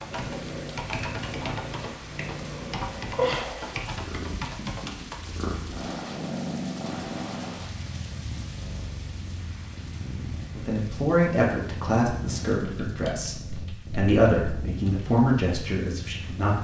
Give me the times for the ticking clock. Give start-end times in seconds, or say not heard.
not heard.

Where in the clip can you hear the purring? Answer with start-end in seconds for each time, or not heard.
0.0-16.5.